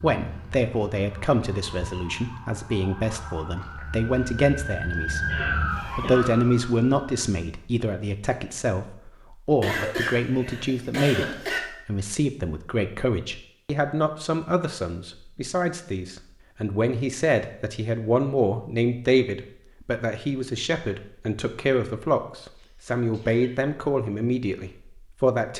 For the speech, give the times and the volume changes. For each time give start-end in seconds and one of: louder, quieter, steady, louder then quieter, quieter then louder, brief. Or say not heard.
0.0-25.5 steady.